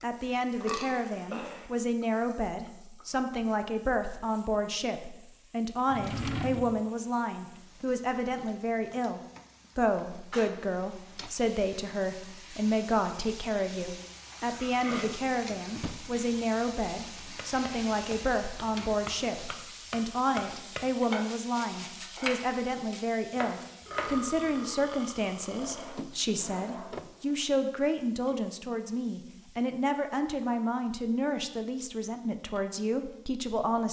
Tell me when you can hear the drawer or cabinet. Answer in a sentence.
The drawer or cabinet can be heard from 5.8 to 6.8 s, from 15.7 to 16.2 s and from 25.5 to 27.4 s.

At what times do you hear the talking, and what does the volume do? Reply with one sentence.
The talking can be heard from 0.0 to 33.8 s, at a steady volume.